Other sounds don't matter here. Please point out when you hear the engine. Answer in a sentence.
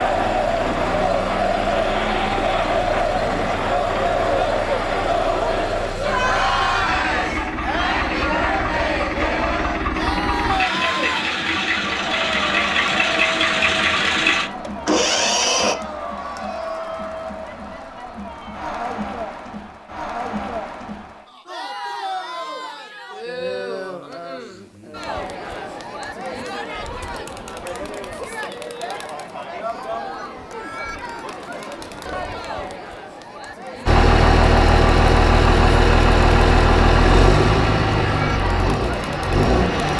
The engine can be heard from 0.0 to 15.8 s and from 33.9 to 39.9 s.